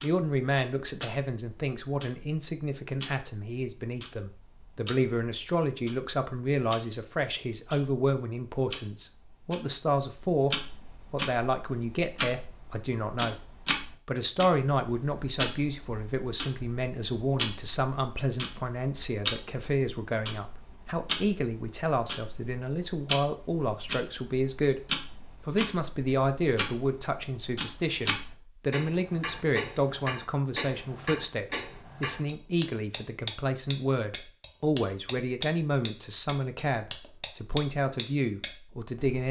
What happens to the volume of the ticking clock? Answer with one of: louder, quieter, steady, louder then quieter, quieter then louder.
louder.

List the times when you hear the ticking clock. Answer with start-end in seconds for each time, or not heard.
0.0-39.2.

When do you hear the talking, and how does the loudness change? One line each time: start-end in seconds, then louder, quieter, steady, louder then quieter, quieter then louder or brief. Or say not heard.
0.0-13.4 steady
14.1-39.2 steady.